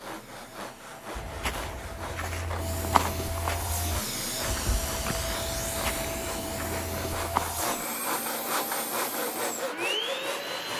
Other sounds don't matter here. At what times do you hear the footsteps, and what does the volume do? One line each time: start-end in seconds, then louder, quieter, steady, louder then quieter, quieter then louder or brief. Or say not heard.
1.1-7.7 louder then quieter.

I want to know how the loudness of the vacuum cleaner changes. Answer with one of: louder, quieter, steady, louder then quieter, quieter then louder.
louder.